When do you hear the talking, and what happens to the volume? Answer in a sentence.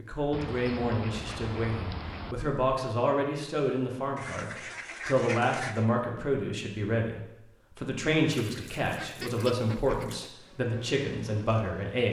The talking can be heard from 0.0 to 12.0 s, at a steady volume.